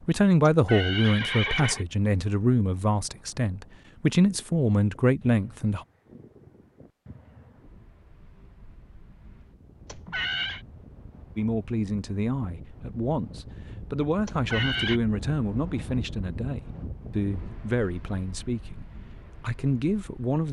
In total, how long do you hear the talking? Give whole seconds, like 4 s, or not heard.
15 s.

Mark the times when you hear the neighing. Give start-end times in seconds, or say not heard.
0.5-1.9, 9.8-10.6, 14.2-15.0.